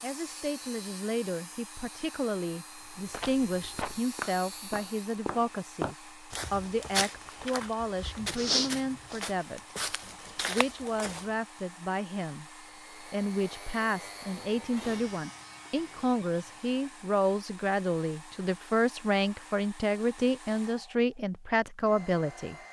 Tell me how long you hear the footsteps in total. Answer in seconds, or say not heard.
8 s.